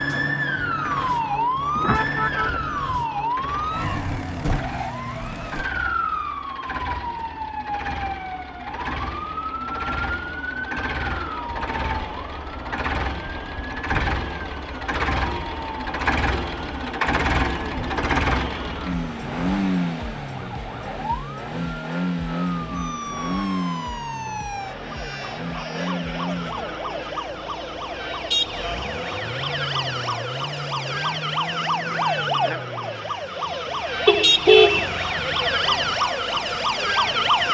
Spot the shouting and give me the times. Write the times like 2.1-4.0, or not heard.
not heard.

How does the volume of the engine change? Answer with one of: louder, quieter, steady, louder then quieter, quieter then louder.
louder then quieter.